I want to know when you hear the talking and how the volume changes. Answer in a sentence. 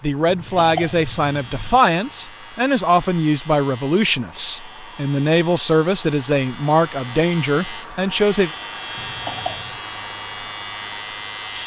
The talking can be heard from 0.0 to 8.5 s, at a steady volume.